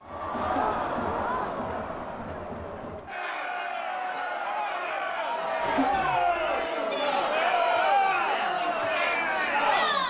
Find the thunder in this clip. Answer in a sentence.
The thunder can't be heard in this clip.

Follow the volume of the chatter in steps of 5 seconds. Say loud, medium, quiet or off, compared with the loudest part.
medium, loud.